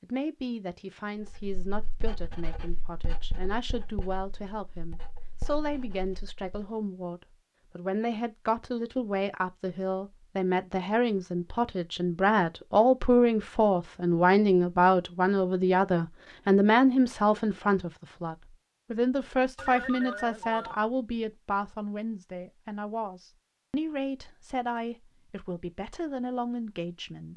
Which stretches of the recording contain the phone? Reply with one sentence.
You can hear the phone from 19.6 to 20.8 s.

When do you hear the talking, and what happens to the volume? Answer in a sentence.
The talking can be heard from 0.0 to 27.3 s, getting louder then quieter.